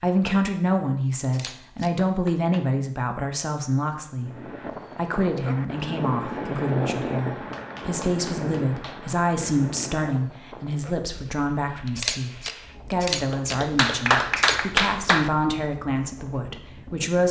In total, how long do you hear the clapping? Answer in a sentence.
The clapping can be heard for 5 seconds in total.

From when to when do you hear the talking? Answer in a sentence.
You can hear the talking from 0.0 to 12.3 s and from 12.9 to 17.2 s.